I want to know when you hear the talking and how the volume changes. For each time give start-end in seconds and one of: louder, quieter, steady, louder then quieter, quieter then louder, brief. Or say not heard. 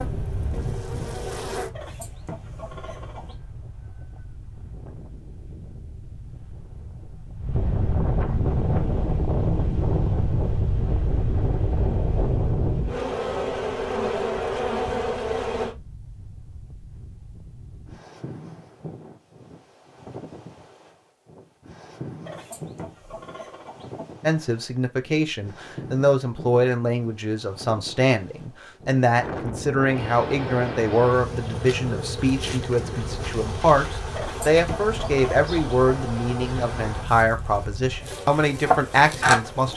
24.2-39.7 steady.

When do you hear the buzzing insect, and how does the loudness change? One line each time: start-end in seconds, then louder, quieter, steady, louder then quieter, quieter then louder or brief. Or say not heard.
0.0-1.7 brief
8.4-15.8 louder
29.9-39.7 louder.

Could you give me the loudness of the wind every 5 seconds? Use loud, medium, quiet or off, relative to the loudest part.
medium, loud, loud, quiet, quiet, medium, medium, medium.